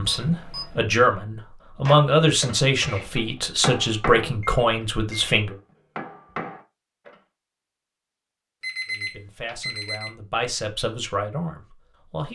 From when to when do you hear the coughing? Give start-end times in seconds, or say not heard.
not heard.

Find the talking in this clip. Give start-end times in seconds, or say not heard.
0.0-5.5, 8.8-12.3.